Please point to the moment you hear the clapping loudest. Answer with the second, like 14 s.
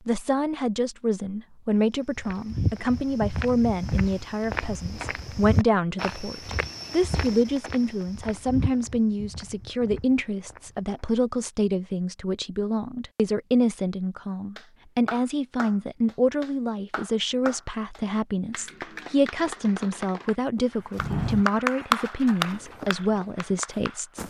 22 s.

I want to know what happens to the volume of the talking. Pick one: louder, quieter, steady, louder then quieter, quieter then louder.
steady.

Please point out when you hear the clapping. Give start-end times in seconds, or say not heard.
14.6-24.2.